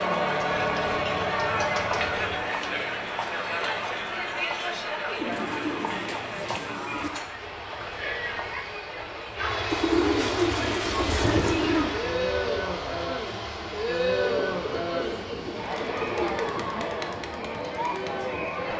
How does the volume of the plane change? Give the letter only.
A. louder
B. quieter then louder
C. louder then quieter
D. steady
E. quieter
C.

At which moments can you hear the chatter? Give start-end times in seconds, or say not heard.
0.0-18.7.